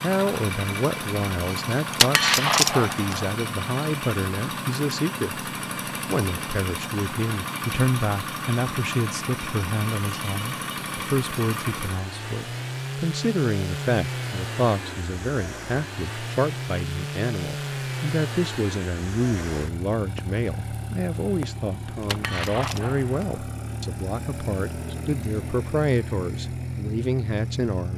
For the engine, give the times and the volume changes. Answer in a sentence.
You can hear the engine from 0.0 to 27.9 s, at a steady volume.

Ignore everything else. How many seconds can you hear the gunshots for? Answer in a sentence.
You can hear the gunshots for 3 seconds altogether.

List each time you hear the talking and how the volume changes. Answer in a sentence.
The talking can be heard from 0.0 to 27.9 s, at a steady volume.